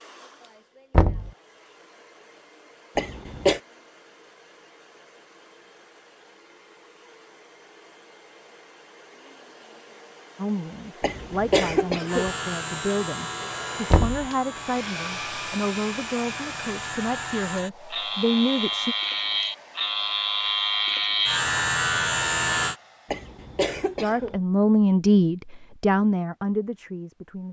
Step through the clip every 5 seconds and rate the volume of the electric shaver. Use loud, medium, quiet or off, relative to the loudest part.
off, off, medium, medium, loud, off.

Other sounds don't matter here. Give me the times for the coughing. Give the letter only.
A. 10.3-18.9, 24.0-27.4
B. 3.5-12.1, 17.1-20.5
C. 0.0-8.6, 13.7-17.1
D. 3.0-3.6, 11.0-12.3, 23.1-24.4
D.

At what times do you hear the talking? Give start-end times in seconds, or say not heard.
10.3-18.9, 24.0-27.4.